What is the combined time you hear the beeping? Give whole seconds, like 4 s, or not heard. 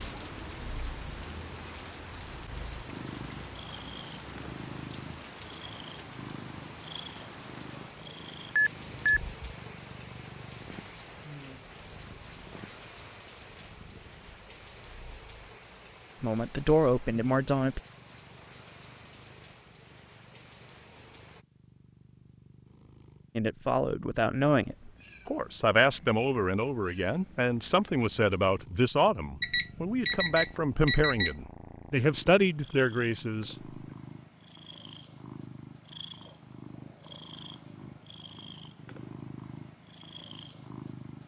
3 s.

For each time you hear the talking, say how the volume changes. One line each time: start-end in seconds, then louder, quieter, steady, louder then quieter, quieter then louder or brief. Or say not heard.
16.2-17.8 brief
23.4-33.5 steady.